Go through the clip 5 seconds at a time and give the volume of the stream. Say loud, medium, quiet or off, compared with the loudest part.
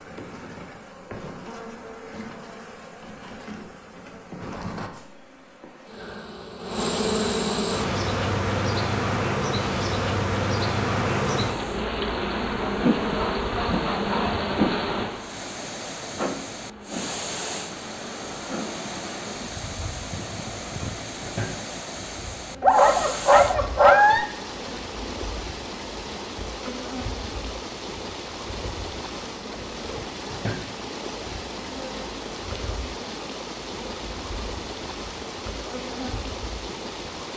off, off, quiet, loud, loud, loud, loud, loud.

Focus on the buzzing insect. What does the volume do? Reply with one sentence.
The loudness of the buzzing insect goes up, then down.